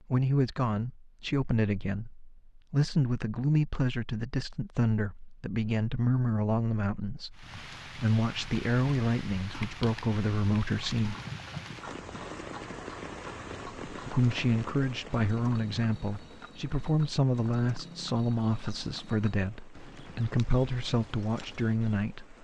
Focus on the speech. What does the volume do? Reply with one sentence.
The loudness of the speech stays about the same.